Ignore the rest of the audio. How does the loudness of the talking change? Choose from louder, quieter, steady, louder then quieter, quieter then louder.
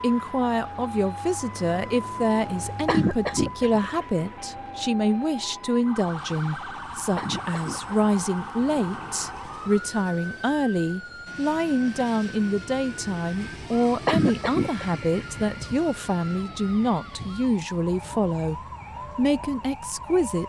steady.